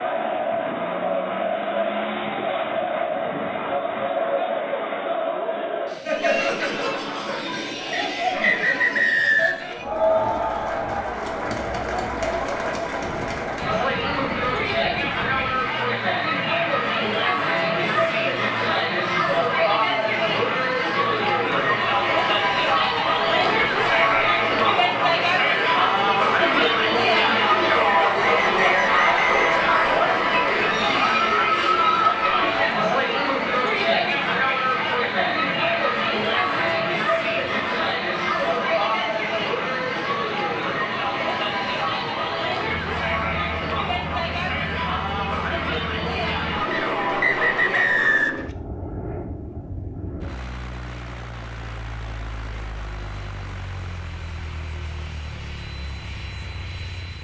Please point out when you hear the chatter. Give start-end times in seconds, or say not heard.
0.0-48.3.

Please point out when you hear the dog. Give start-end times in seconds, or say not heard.
not heard.